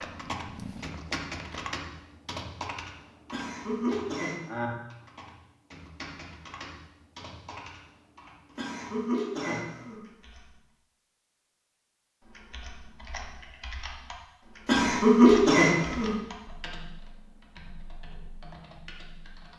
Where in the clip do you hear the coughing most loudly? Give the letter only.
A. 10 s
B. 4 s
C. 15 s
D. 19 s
C.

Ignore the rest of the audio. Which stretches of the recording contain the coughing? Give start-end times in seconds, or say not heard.
3.3-4.4, 8.6-10.0, 14.7-16.1.